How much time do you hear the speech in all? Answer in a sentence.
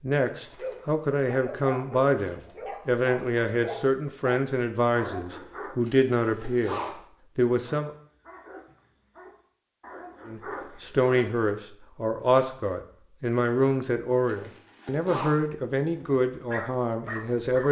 The speech can be heard for 15 seconds in total.